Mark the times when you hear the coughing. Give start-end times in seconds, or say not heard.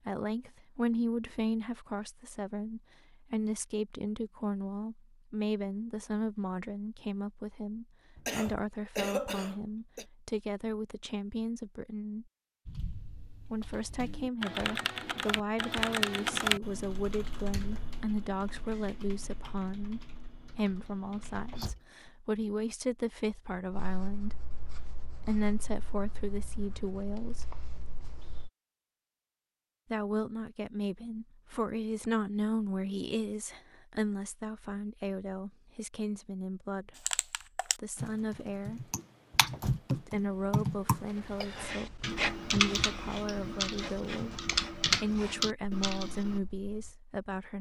8.2-10.1.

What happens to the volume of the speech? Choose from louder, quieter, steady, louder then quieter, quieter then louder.
steady.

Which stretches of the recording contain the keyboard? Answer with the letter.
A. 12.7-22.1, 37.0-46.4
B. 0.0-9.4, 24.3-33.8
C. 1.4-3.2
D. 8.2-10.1
A.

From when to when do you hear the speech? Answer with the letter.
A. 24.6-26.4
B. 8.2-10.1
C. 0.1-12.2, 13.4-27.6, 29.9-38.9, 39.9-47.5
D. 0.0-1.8
C.